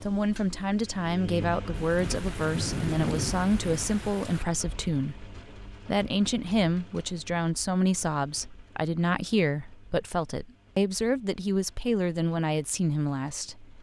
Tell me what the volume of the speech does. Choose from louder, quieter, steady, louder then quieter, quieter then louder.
steady.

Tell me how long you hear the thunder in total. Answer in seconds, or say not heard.
3 s.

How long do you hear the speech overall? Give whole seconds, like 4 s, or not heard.
14 s.